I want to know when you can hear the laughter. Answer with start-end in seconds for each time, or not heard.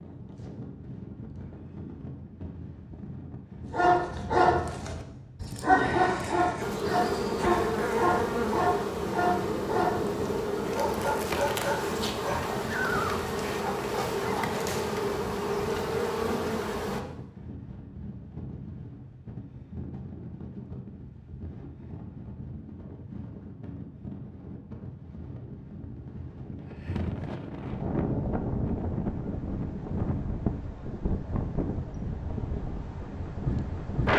not heard.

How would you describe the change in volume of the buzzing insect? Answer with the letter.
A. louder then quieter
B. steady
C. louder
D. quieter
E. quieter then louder
B.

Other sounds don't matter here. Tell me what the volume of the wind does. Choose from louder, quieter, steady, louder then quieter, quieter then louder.
louder.